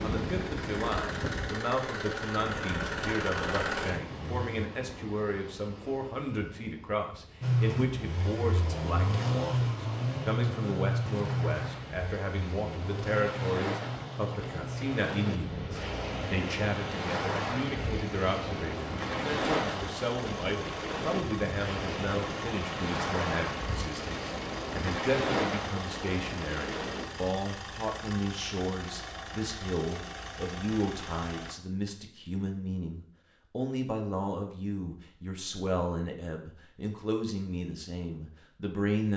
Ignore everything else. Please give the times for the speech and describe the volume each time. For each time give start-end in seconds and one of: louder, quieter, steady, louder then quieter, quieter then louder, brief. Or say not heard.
0.0-39.1 steady.